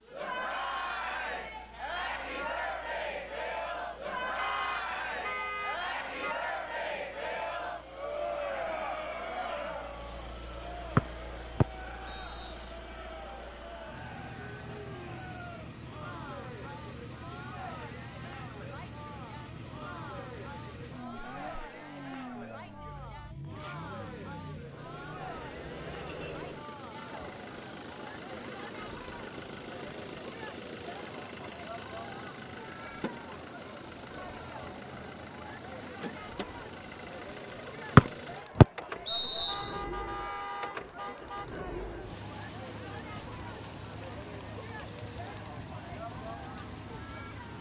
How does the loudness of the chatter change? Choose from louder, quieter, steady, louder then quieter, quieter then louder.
quieter.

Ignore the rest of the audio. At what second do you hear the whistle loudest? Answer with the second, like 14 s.
38 s.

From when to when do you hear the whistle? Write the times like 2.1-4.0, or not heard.
10.9-12.7, 38.0-39.7.